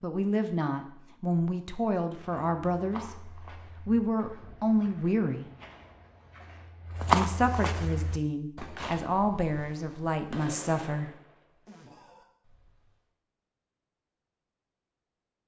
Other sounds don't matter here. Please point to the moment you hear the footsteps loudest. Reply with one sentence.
The volume of the footsteps peaks at 7 seconds.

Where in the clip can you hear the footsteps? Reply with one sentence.
You can hear the footsteps from 2.1 to 9.2 s.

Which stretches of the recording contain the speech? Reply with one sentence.
You can hear the speech from 0.0 to 5.5 s and from 7.1 to 11.1 s.